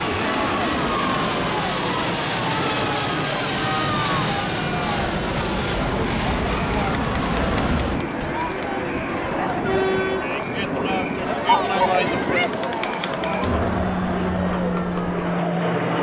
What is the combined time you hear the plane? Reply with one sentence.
You can hear the plane for 16 seconds altogether.